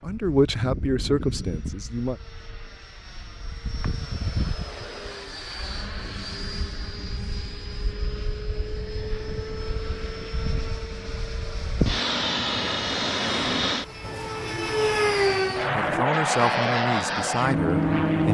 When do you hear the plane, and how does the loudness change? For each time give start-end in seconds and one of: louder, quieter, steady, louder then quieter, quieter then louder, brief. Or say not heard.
0.0-18.3 louder.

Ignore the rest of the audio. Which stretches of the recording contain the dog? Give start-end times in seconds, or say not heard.
not heard.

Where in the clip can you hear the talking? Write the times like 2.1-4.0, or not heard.
0.0-2.1, 15.6-18.3.